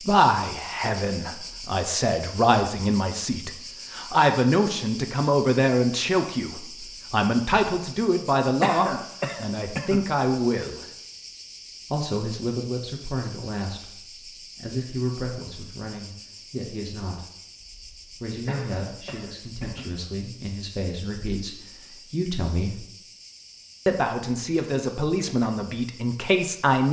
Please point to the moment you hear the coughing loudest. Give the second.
9 s.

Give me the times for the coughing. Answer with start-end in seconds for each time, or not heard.
8.6-10.1, 18.4-19.9.